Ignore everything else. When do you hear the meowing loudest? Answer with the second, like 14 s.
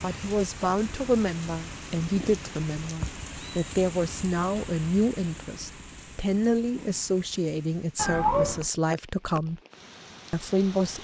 8 s.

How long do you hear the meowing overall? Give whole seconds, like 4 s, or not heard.
2 s.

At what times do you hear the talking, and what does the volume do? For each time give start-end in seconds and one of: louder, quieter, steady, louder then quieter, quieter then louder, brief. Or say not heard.
0.0-9.6 steady
10.3-10.9 brief.